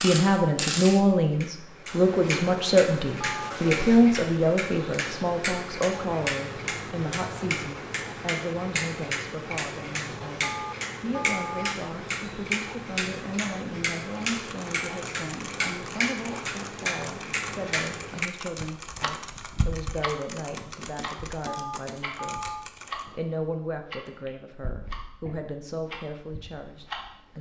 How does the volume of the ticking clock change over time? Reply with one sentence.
The volume of the ticking clock goes down.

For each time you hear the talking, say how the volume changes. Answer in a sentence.
You can hear the talking from 0.0 to 27.3 s, getting quieter.